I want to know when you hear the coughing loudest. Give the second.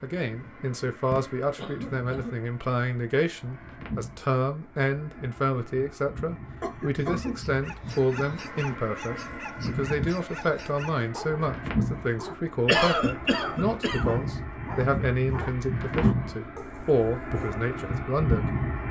13 s.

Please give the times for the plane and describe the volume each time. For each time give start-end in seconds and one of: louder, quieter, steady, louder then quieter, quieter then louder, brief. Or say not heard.
0.0-18.8 louder.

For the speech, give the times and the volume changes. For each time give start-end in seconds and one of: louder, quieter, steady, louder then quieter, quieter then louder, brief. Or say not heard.
0.0-18.6 steady.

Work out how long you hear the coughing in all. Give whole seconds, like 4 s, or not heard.
4 s.